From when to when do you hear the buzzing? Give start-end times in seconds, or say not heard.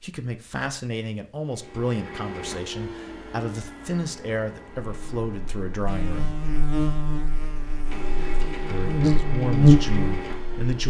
4.7-10.6.